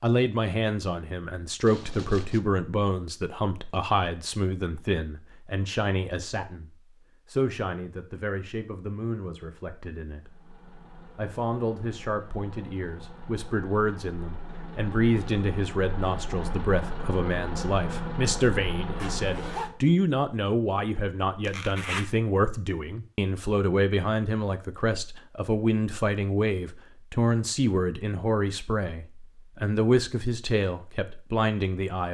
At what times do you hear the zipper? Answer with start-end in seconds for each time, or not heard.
1.6-2.4, 19.0-19.7, 21.4-22.1.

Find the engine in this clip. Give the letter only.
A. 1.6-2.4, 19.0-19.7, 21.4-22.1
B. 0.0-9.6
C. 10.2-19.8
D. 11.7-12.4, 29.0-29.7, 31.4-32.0
C.